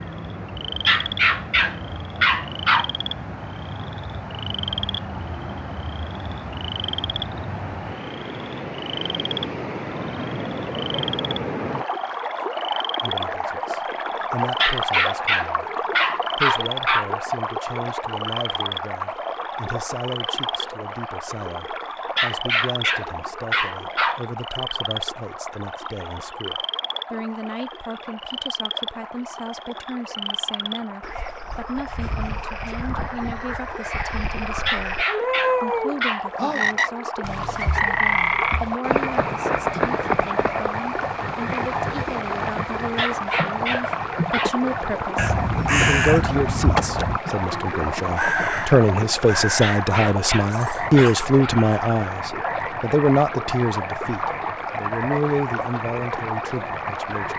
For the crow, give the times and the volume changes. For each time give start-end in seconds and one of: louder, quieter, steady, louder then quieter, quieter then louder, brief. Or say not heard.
45.0-51.9 quieter.